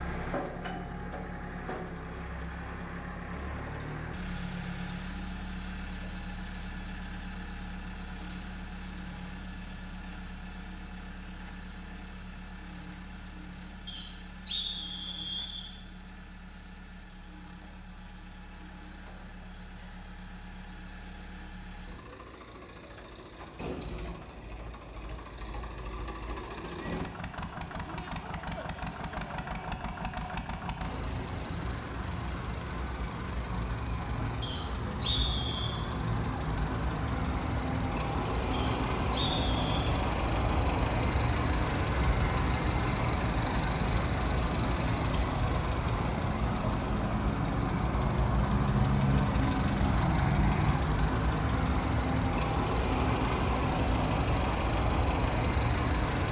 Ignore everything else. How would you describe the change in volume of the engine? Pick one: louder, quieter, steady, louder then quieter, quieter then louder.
quieter then louder.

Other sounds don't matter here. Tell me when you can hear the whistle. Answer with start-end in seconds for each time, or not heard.
13.8-15.7, 34.4-35.8, 38.5-39.8.